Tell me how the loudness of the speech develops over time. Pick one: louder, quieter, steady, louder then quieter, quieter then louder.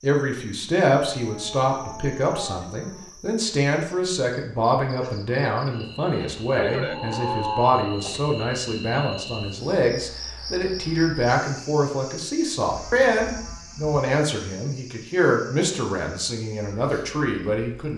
steady.